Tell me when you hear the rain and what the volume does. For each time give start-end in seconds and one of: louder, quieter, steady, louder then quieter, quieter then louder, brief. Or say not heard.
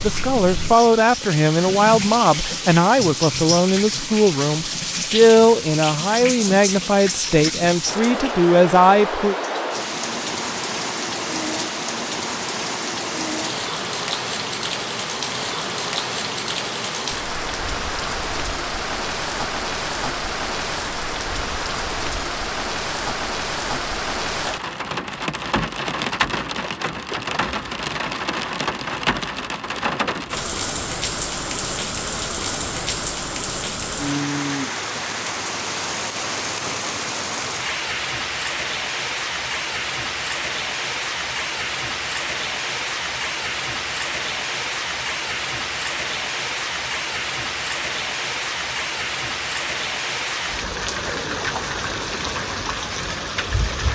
0.0-53.8 steady.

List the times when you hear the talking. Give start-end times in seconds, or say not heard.
0.0-9.3.